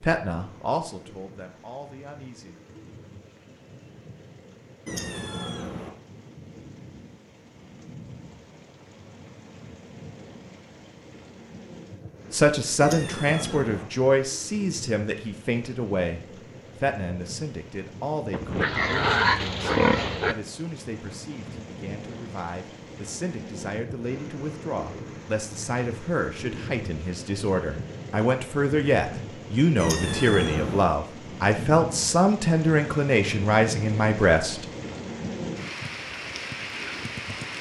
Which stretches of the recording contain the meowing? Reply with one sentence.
The meowing can be heard from 4.8 to 5.9 s, from 12.8 to 13.8 s and from 29.8 to 30.9 s.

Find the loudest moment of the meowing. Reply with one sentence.
The volume of the meowing peaks at 30 seconds.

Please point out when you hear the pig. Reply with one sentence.
You can hear the pig from 18.3 to 20.4 s.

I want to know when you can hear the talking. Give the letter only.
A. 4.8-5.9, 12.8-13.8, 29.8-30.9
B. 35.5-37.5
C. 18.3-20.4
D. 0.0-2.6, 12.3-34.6
D.